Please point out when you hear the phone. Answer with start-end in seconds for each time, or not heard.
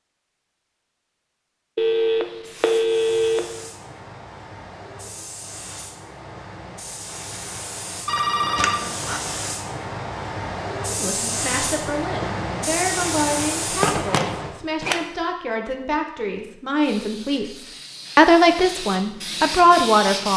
1.8-3.4, 8.1-9.2, 13.8-15.0.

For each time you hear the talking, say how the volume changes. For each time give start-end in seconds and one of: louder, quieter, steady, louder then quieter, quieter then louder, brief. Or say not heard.
10.9-20.3 louder.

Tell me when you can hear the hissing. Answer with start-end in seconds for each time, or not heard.
2.4-14.6, 16.8-20.3.